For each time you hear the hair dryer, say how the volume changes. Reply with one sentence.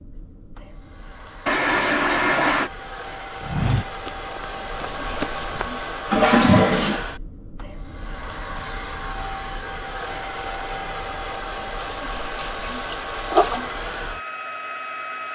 The hair dryer can be heard from 0.0 to 15.2 s, getting louder.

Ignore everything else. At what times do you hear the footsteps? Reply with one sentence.
You can hear the footsteps from 3.4 to 5.8 s.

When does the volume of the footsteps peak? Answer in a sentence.
The volume of the footsteps peaks at 4 seconds.